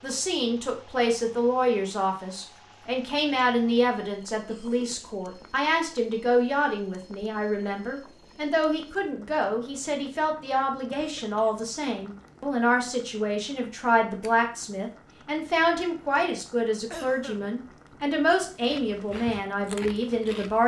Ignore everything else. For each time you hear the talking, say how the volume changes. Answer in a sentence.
The talking can be heard from 0.0 to 20.6 s, at a steady volume.